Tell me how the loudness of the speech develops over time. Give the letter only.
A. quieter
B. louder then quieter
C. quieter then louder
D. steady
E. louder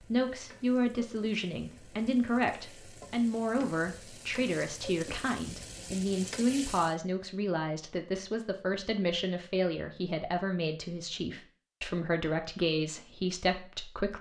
D.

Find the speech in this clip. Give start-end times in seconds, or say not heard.
0.0-14.1.